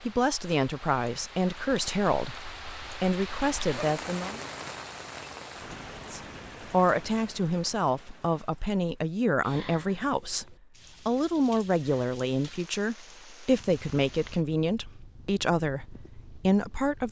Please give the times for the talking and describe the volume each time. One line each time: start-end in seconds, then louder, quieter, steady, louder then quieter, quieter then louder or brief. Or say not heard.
0.0-4.4 steady
6.1-17.0 steady.